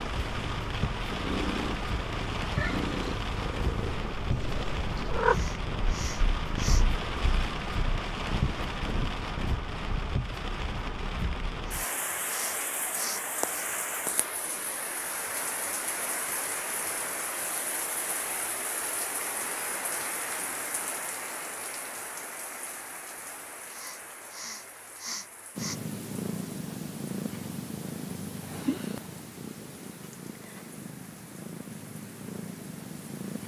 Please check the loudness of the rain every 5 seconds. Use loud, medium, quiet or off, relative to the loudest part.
loud, loud, loud, loud, medium, quiet, quiet.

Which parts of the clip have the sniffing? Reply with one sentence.
The sniffing can be heard from 5.2 to 6.8 s, from 11.7 to 13.7 s and from 23.7 to 25.8 s.